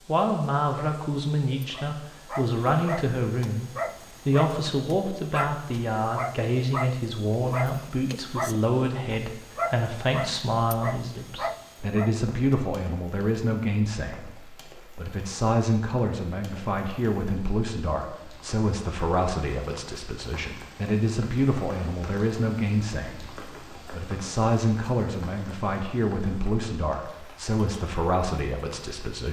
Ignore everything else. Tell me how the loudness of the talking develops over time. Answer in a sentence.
The loudness of the talking stays about the same.